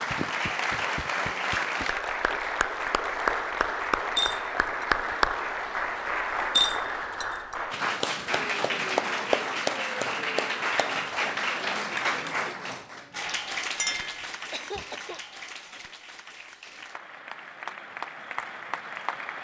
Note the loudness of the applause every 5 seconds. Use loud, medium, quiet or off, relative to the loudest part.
loud, loud, loud, medium.